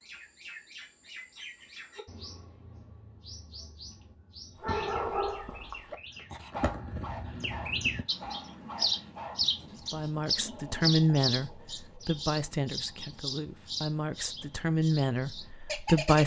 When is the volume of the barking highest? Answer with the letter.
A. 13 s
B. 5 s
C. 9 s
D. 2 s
B.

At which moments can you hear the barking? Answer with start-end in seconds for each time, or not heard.
4.5-9.9.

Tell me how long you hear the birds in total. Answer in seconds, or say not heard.
16 s.